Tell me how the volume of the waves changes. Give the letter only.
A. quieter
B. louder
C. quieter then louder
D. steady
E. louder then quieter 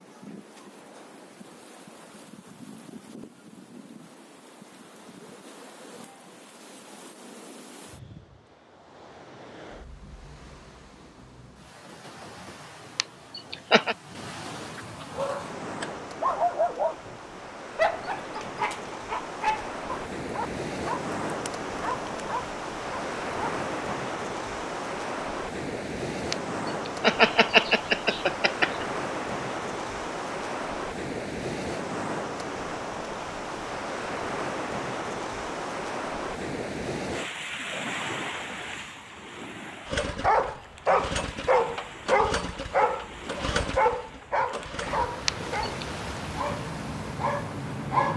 E.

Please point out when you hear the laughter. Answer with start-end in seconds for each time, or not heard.
12.9-13.9, 26.3-28.9, 45.2-45.9.